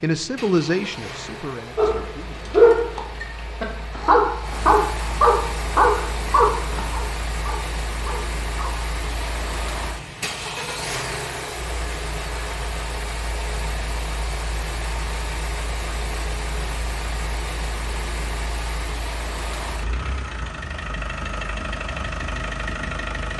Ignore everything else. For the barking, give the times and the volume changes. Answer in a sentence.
The barking can be heard from 1.8 to 8.8 s, getting quieter.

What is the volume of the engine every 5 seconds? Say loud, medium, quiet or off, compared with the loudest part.
medium, loud, loud, loud, loud.